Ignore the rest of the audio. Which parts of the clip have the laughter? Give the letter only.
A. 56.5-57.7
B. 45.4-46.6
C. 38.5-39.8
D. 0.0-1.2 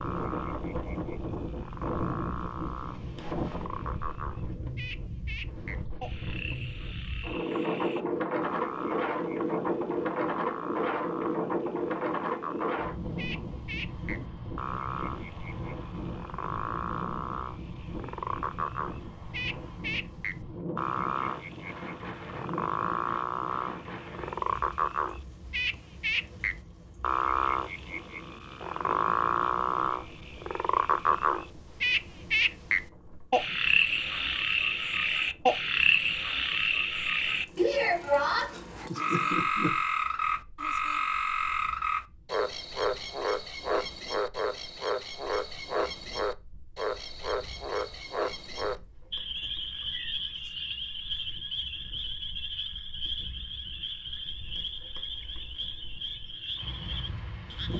C.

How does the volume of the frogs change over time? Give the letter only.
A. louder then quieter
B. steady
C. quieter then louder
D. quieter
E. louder
A.